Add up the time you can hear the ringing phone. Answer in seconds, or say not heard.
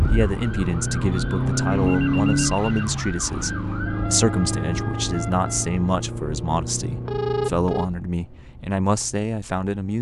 2 s.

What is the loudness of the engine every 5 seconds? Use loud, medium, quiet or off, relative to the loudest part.
loud, medium.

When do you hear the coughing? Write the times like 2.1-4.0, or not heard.
not heard.